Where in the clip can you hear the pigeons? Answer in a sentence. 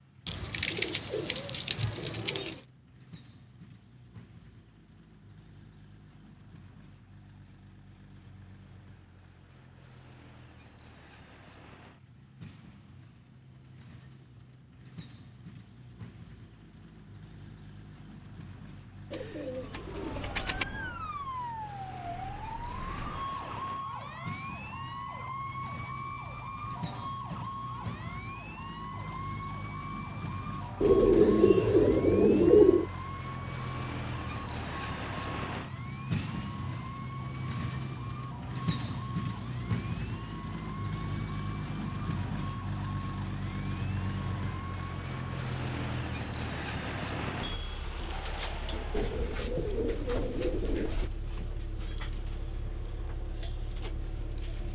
The pigeons can be heard from 0.2 to 2.6 s, from 19.1 to 20.6 s, from 30.8 to 32.9 s and from 48.9 to 51.1 s.